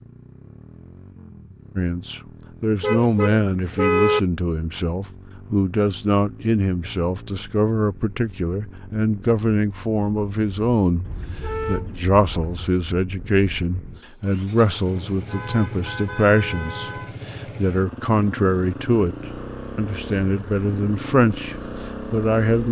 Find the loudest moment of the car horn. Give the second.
4 s.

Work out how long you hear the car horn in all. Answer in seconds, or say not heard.
5 s.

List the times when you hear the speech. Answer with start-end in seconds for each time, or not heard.
1.8-11.1, 11.7-22.6.